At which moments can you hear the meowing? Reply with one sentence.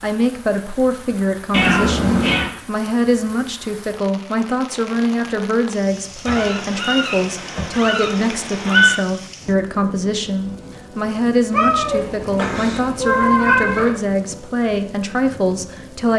The meowing can be heard from 1.5 to 2.5 s, from 6.2 to 9.0 s and from 11.5 to 14.0 s.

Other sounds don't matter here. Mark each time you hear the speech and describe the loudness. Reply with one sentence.
The speech can be heard from 0.0 to 16.1 s, at a steady volume.